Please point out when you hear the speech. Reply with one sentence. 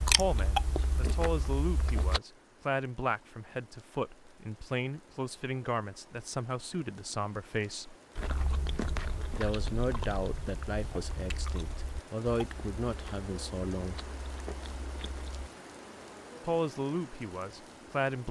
You can hear the speech from 0.0 to 8.0 s, from 9.3 to 14.0 s and from 16.4 to 18.2 s.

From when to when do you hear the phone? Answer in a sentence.
You can't hear the phone here.